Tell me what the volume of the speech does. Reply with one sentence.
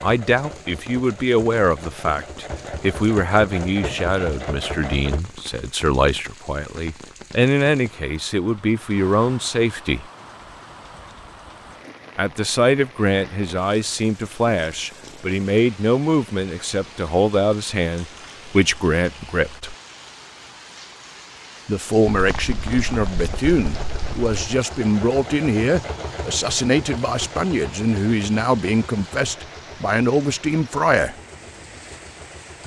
The loudness of the speech stays about the same.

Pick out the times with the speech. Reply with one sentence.
The speech can be heard from 0.0 to 10.1 s, from 12.2 to 19.8 s and from 21.6 to 31.1 s.